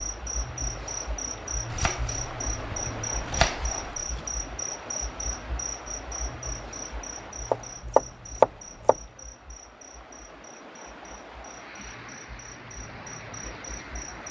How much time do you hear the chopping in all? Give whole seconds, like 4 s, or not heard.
4 s.